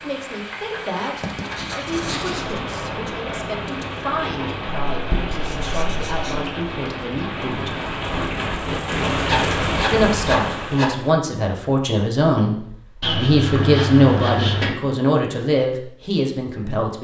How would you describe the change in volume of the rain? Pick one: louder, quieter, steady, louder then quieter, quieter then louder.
louder.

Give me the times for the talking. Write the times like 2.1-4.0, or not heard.
0.0-7.8, 9.9-16.9.